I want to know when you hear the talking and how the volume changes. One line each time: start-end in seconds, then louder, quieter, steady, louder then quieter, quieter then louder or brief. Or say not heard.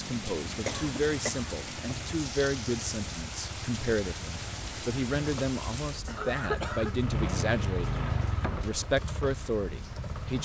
0.0-10.4 steady.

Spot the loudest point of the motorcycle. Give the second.
8 s.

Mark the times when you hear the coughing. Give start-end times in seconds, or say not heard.
0.7-1.5, 6.0-7.0.